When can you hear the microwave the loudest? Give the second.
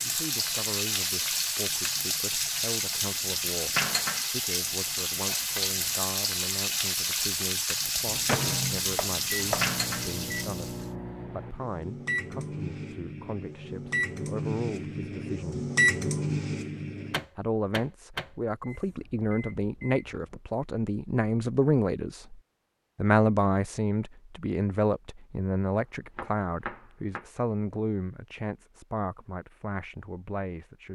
16 s.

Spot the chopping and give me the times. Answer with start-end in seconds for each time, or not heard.
8.9-9.8, 26.1-27.2.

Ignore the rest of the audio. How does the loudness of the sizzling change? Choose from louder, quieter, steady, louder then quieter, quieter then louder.
steady.